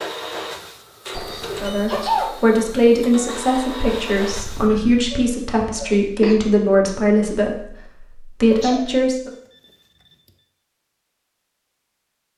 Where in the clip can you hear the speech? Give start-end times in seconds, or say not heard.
1.6-9.3.